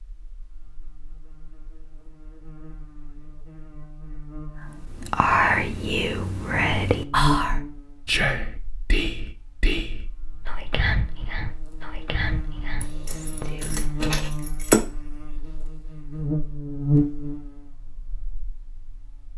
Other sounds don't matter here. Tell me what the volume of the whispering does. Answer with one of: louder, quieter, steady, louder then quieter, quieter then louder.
quieter.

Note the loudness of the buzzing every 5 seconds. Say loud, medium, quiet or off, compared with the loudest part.
quiet, loud, medium, loud.